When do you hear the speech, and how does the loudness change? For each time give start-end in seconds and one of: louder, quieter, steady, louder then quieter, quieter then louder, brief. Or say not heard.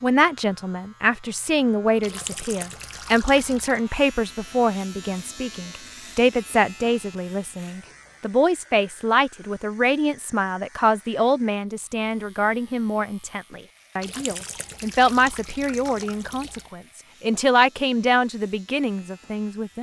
0.0-19.7 steady.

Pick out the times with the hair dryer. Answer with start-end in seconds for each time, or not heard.
not heard.